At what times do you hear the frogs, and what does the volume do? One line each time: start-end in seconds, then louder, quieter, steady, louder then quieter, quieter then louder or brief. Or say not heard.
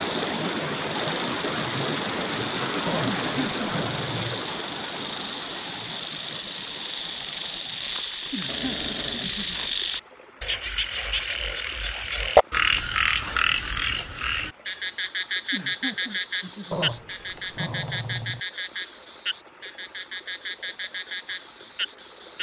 0.0-22.3 louder then quieter.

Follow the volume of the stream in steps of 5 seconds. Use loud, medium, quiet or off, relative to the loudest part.
loud, quiet, quiet, quiet, quiet.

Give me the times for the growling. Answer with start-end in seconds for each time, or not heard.
2.9-4.4, 8.4-9.8, 16.7-18.4.